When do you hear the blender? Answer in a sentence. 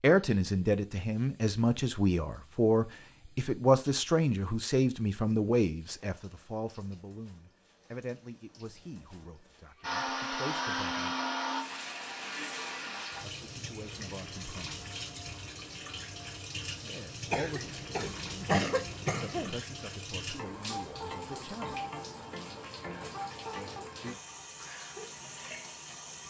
You can hear the blender from 9.8 to 12.8 s.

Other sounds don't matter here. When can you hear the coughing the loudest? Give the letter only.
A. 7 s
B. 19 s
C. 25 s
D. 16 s
B.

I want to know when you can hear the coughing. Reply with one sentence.
You can hear the coughing from 17.3 to 19.6 s.